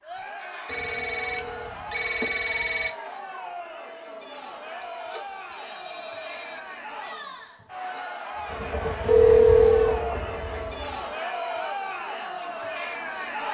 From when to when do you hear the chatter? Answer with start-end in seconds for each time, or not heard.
0.0-13.4.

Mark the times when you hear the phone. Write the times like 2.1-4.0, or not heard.
0.7-3.0, 4.8-6.6, 9.1-10.0.